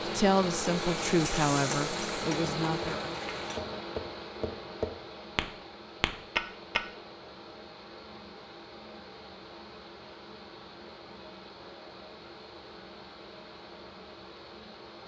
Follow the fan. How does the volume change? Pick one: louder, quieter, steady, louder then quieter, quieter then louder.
quieter.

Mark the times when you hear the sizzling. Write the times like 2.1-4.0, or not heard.
0.2-3.6.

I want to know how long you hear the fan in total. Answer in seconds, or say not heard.
15 s.